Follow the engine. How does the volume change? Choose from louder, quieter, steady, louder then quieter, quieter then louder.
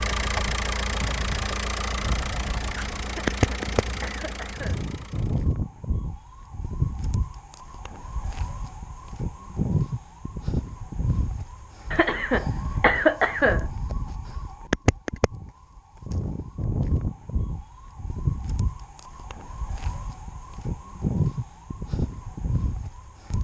quieter.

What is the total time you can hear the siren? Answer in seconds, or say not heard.
23 s.